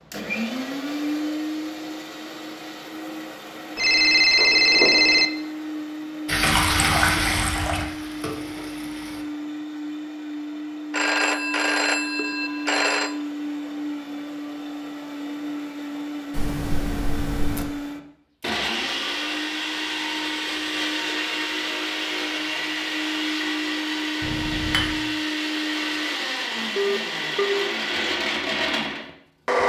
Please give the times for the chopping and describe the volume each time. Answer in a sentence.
You can't hear the chopping here.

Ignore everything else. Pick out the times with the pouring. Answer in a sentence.
The pouring can be heard from 6.4 to 7.8 s, from 16.3 to 17.6 s and from 24.2 to 24.9 s.